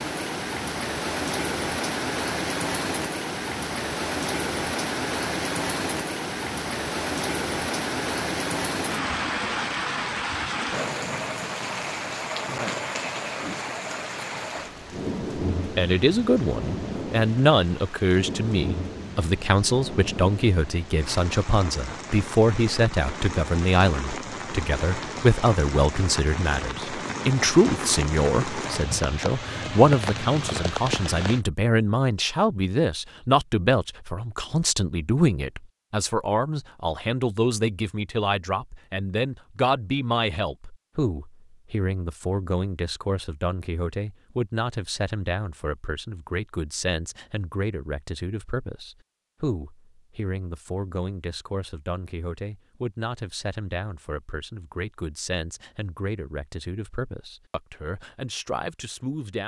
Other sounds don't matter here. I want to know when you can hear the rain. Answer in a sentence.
The rain can be heard from 0.0 to 31.4 s.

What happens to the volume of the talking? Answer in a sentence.
The volume of the talking goes down.